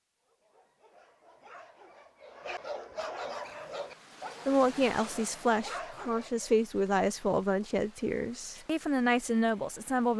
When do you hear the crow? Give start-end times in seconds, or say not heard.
not heard.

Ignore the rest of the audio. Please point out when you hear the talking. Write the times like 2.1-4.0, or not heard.
4.5-10.1.